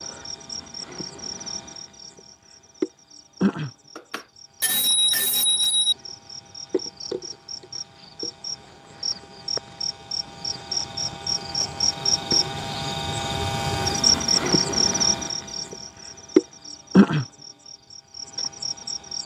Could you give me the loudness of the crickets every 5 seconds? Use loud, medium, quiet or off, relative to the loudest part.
medium, medium, loud, loud.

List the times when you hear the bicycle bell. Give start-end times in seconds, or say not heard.
4.0-6.0.